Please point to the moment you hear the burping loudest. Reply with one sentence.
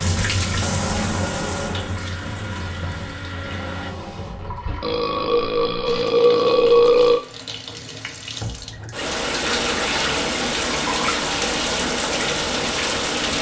The loudest moment of the burping is at 7 seconds.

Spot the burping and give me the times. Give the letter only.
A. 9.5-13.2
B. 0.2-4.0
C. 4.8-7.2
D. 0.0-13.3
C.